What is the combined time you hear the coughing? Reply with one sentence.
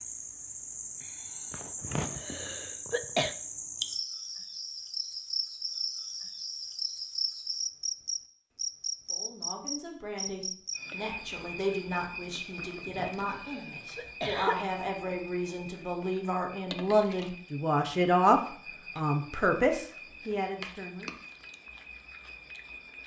You can hear the coughing for 4 seconds altogether.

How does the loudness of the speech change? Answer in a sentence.
The loudness of the speech goes up.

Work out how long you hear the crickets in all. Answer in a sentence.
You can hear the crickets for 23 seconds altogether.